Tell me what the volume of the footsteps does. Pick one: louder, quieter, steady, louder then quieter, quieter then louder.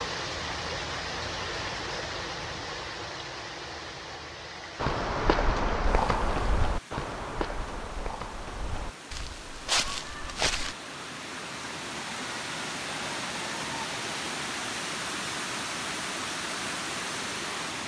quieter then louder.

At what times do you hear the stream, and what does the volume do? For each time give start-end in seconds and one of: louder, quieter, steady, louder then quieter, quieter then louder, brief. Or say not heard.
0.0-17.8 quieter then louder.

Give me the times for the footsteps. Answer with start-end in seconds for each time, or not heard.
4.8-10.8.